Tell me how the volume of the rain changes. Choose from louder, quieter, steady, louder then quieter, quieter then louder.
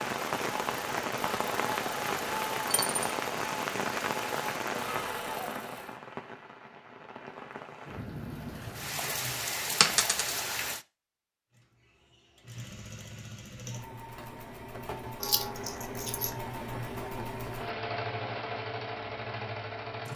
quieter then louder.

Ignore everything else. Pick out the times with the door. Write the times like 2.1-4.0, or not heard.
not heard.